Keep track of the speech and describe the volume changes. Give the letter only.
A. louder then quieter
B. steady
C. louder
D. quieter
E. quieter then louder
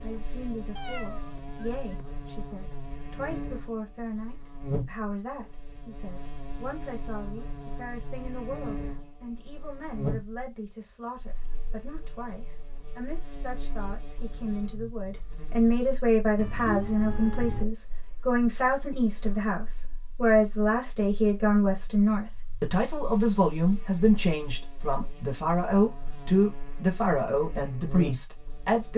C.